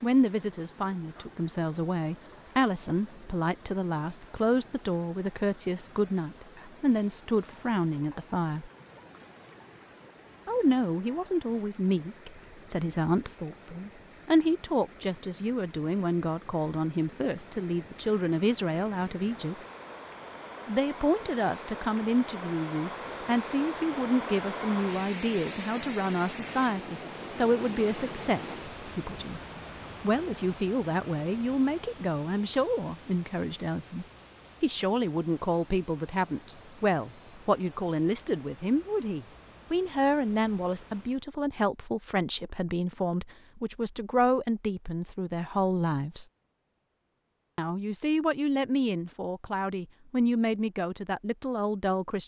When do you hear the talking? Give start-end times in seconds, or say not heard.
0.0-8.7, 10.4-19.6, 20.6-29.4, 30.0-46.2, 47.5-52.2.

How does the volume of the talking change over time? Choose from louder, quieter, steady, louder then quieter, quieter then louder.
steady.